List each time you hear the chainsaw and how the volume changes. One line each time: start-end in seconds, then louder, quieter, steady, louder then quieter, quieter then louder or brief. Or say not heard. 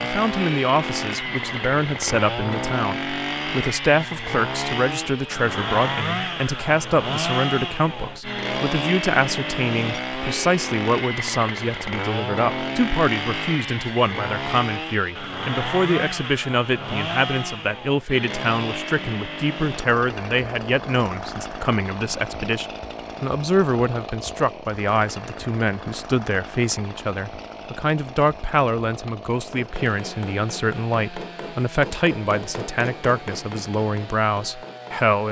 0.0-35.2 quieter.